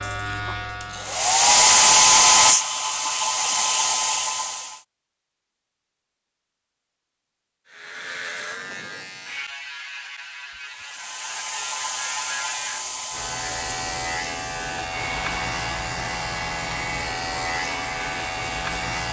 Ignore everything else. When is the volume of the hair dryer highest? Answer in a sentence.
The loudest moment of the hair dryer is at 2 seconds.